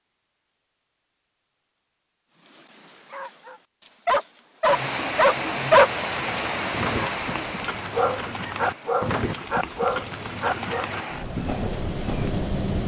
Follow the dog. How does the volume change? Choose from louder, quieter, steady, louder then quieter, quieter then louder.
louder then quieter.